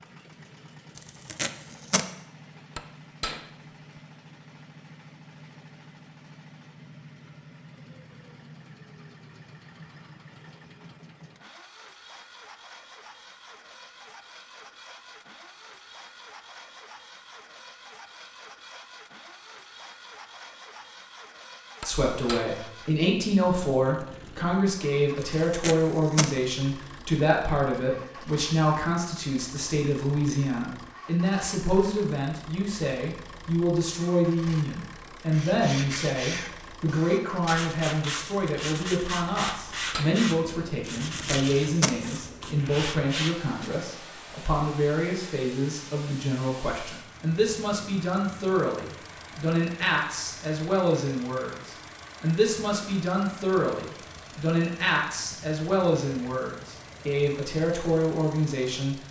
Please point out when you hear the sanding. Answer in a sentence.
The sanding can be heard from 35.2 to 43.8 s.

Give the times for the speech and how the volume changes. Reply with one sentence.
The speech can be heard from 21.8 to 59.0 s, at a steady volume.